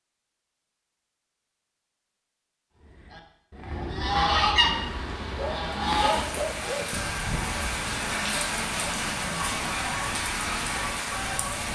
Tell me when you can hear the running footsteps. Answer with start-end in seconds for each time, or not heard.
not heard.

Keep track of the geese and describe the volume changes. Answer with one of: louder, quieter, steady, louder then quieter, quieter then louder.
quieter.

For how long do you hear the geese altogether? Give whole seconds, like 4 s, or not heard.
9 s.